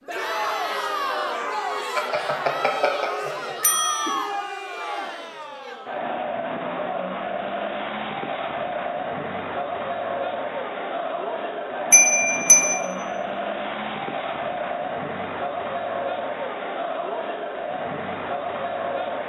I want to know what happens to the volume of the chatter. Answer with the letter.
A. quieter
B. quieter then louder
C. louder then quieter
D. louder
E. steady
E.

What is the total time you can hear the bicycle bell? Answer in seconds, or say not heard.
3 s.